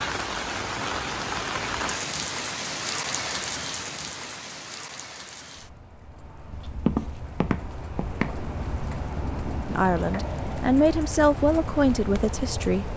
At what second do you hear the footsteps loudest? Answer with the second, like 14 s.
7 s.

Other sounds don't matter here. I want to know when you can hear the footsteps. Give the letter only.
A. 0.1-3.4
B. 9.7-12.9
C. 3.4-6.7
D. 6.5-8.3
D.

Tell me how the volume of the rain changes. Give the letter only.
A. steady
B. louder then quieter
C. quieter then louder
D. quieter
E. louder
C.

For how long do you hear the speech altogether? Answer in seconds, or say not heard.
3 s.